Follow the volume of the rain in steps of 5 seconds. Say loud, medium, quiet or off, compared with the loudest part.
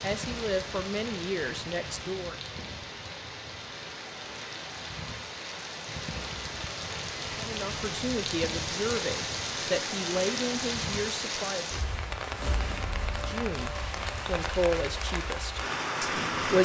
medium, loud, loud, loud.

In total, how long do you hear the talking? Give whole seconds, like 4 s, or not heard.
10 s.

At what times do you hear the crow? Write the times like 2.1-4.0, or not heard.
not heard.